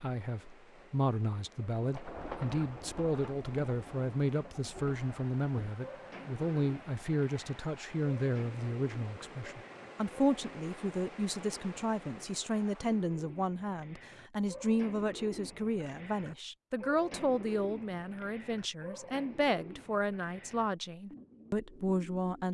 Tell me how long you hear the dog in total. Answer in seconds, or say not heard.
not heard.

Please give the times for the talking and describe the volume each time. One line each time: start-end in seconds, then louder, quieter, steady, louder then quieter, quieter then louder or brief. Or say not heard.
0.0-22.5 steady.